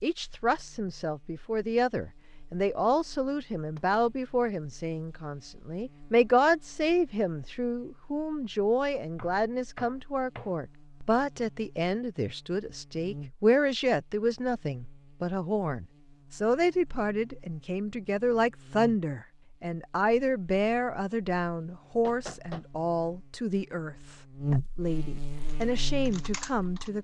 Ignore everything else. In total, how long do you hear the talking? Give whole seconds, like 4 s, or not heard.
27 s.